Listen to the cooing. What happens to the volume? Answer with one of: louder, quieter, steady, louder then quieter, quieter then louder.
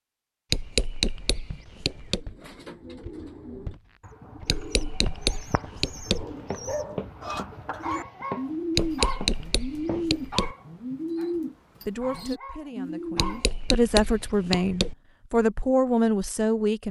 louder.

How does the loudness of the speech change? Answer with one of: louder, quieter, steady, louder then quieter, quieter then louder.
louder.